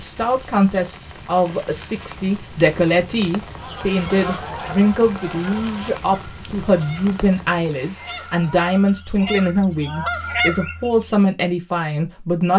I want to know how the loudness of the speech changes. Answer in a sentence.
The volume of the speech stays about the same.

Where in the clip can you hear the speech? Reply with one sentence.
The speech can be heard from 0.0 to 12.5 s.